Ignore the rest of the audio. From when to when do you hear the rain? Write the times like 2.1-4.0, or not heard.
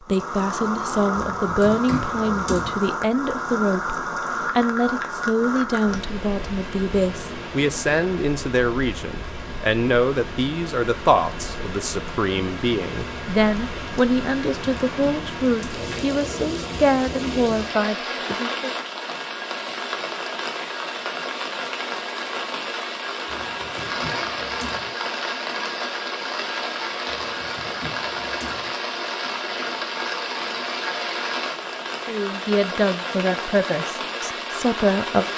0.0-35.3.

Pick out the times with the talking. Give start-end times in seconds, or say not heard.
0.0-18.8, 32.0-35.3.